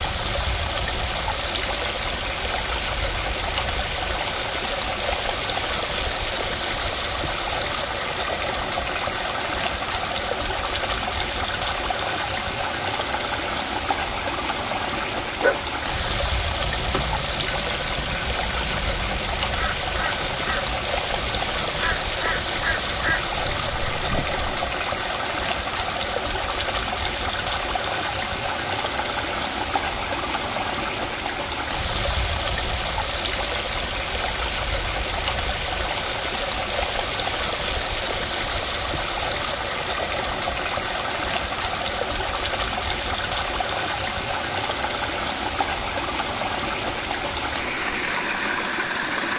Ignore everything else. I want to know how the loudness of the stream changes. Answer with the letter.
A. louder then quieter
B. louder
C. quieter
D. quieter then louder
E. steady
E.